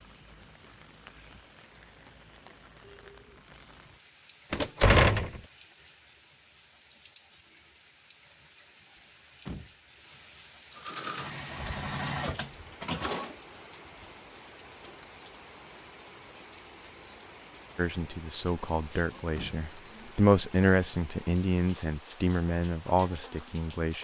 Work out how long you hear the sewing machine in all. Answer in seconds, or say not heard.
3 s.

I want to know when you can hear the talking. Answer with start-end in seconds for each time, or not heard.
17.8-23.9.